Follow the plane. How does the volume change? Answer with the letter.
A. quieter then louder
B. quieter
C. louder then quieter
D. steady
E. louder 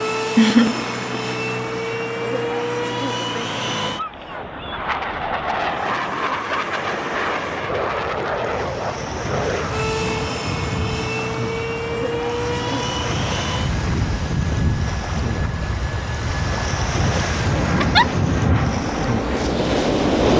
D.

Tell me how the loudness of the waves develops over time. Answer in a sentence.
The loudness of the waves goes up.